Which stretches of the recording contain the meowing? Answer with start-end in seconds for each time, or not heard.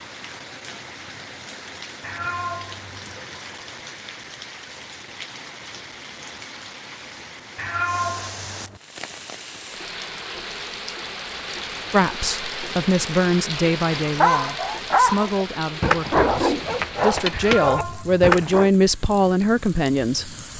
2.0-3.2, 7.5-8.8, 17.3-18.2.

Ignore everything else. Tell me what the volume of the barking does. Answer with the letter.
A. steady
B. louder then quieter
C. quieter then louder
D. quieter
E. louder
A.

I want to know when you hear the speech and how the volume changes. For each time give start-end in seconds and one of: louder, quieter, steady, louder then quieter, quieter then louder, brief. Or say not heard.
11.9-20.5 quieter then louder.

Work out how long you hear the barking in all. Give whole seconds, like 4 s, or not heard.
5 s.